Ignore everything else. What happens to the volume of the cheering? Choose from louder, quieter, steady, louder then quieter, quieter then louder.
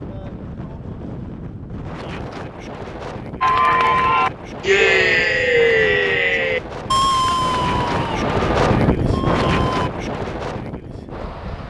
quieter.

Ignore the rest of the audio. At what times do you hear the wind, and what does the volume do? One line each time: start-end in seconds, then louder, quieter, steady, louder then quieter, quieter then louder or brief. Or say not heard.
0.0-11.6 louder.